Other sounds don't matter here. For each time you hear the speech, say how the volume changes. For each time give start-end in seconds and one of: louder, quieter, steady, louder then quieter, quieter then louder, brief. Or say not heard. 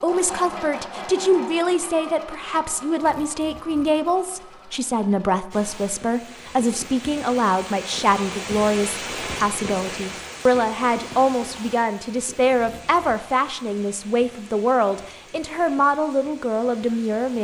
0.0-17.3 steady.